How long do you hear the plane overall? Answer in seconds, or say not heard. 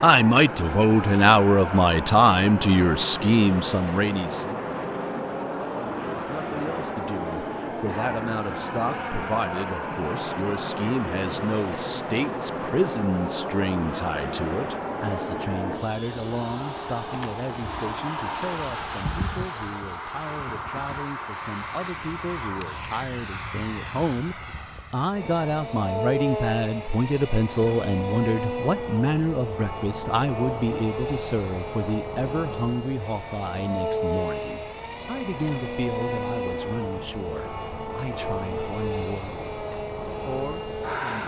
41 s.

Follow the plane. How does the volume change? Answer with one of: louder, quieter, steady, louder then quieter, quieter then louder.
steady.